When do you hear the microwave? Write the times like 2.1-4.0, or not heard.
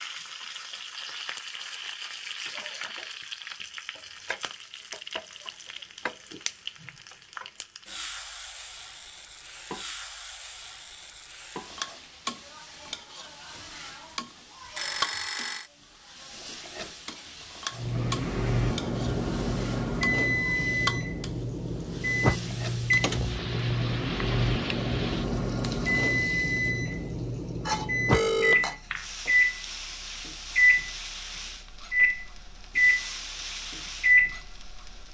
17.8-35.0.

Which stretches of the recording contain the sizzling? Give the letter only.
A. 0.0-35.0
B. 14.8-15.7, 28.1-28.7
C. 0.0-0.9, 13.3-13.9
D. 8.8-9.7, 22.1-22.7
A.